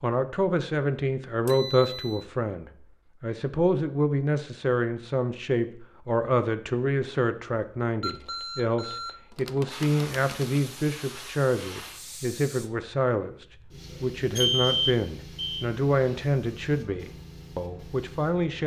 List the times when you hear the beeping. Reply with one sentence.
You can hear the beeping from 1.4 to 2.2 s, from 8.0 to 10.6 s and from 14.3 to 15.7 s.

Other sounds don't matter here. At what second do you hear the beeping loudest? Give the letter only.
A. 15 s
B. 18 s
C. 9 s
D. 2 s
A.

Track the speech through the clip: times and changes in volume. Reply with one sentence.
The speech can be heard from 0.0 to 18.6 s, at a steady volume.